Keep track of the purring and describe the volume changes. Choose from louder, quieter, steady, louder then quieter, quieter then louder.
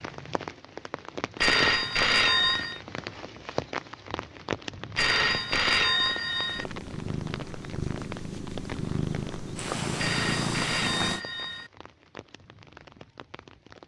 louder.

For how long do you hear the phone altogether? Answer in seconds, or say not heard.
5 s.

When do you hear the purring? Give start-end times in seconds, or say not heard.
6.5-11.2.